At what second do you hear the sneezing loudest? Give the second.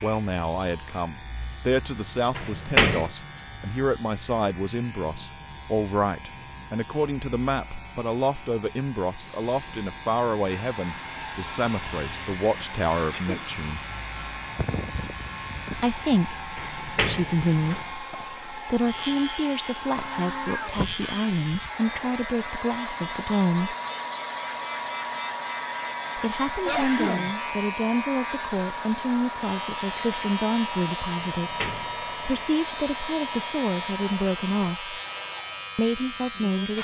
27 s.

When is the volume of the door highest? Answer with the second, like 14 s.
3 s.